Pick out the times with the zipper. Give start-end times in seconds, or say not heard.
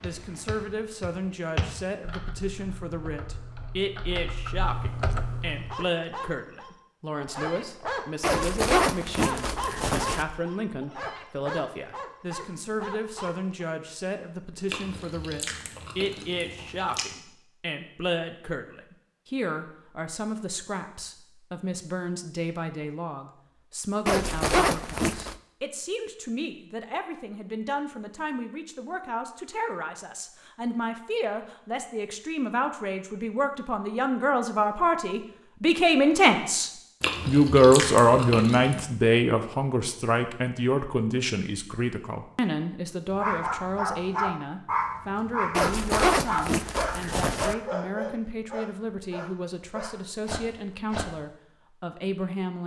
8.2-10.2, 24.1-25.4, 45.5-47.5.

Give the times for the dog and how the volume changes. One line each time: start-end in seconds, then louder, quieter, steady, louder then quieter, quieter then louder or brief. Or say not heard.
5.5-13.7 louder then quieter
43.1-51.1 quieter.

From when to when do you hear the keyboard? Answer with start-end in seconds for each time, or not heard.
0.0-5.8.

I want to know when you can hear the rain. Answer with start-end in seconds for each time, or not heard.
not heard.